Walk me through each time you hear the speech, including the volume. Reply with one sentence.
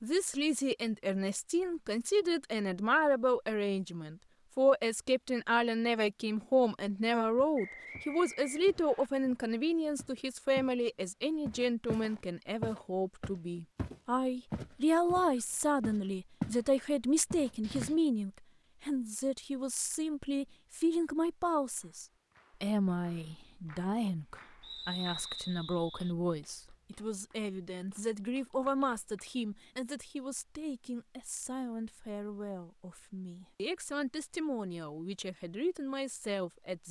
The speech can be heard from 0.0 to 36.8 s, getting quieter.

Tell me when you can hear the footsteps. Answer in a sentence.
The footsteps can be heard from 6.9 to 10.8 s, from 11.4 to 16.6 s and from 17.3 to 17.9 s.